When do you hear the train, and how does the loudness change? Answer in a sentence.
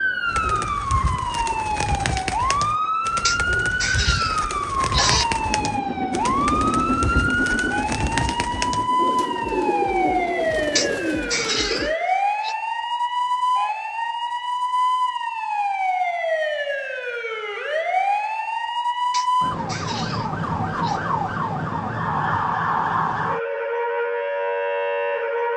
The train can be heard from 5.2 to 10.5 s, getting quieter.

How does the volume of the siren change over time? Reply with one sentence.
The loudness of the siren stays about the same.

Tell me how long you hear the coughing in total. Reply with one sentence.
The coughing can be heard for 6 seconds in total.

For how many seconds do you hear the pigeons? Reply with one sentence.
The pigeons can be heard for 12 seconds in total.